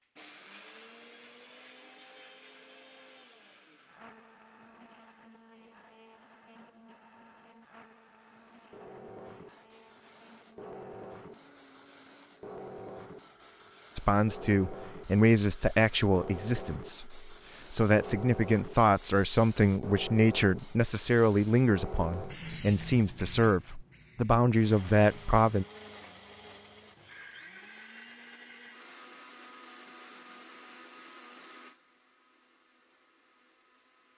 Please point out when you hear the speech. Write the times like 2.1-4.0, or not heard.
13.9-25.6.